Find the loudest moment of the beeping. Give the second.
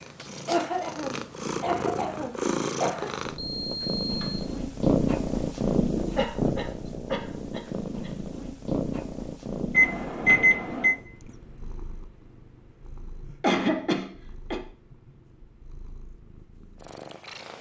10 s.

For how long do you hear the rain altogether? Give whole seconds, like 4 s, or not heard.
not heard.